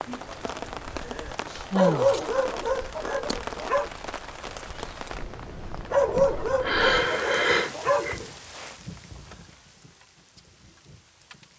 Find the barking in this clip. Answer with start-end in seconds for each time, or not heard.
1.8-3.9, 5.9-8.3.